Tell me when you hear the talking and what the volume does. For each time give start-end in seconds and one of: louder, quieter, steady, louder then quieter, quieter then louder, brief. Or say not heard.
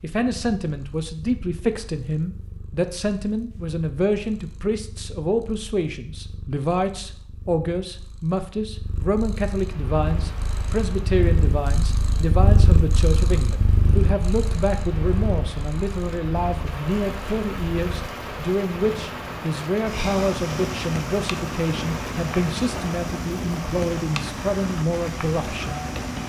0.0-25.9 steady.